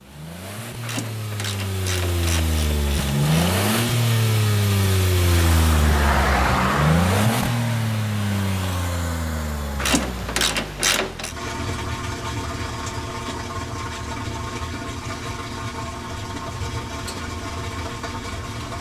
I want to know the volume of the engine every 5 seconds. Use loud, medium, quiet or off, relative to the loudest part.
loud, loud, medium, medium.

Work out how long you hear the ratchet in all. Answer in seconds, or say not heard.
4 s.